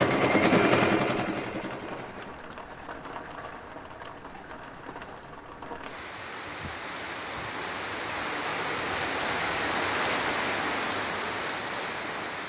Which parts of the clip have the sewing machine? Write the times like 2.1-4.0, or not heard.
0.0-2.5.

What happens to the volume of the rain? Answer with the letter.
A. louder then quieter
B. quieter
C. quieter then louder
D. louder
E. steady
D.